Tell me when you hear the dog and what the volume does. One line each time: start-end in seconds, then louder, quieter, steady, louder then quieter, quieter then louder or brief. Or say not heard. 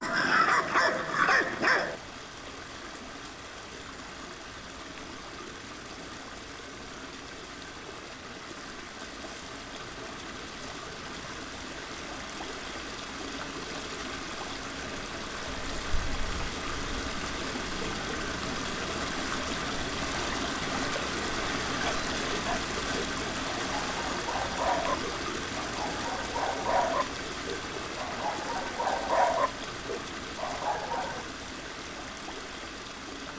0.0-1.9 brief
21.8-31.2 louder.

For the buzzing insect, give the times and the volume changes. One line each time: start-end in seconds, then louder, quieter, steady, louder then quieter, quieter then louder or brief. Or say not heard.
not heard.